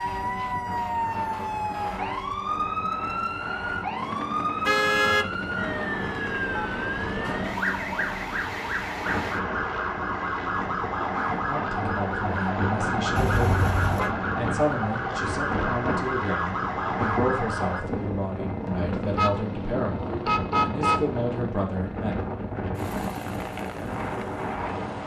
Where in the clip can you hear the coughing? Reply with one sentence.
You can't hear the coughing here.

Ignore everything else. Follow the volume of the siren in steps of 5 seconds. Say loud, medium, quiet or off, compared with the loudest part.
loud, loud, loud, loud, off.